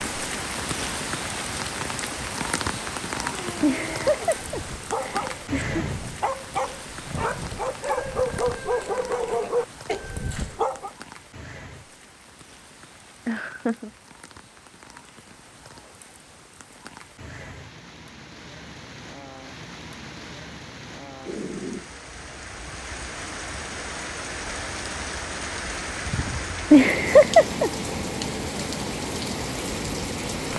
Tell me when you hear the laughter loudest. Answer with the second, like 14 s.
27 s.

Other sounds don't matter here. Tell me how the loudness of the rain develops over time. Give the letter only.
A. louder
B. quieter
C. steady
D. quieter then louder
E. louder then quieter
D.